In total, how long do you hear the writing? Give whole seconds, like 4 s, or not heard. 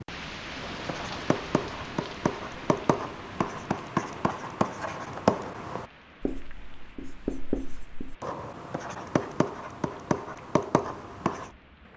11 s.